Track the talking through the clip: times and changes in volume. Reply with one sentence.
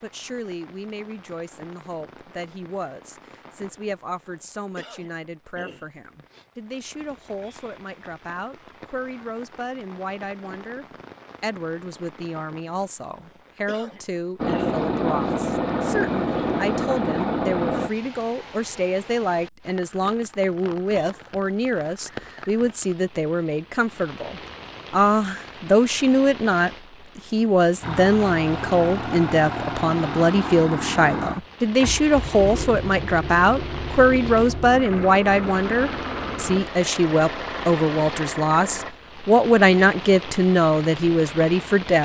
You can hear the talking from 0.0 to 42.0 s, getting louder.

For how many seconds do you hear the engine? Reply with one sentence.
You can hear the engine for 15 seconds altogether.